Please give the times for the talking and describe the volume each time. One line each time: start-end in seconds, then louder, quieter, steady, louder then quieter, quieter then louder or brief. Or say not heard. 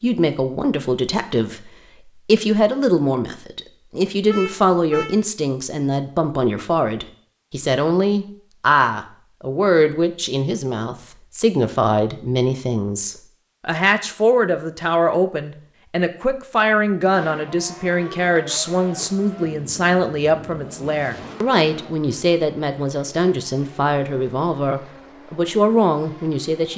0.0-26.7 steady.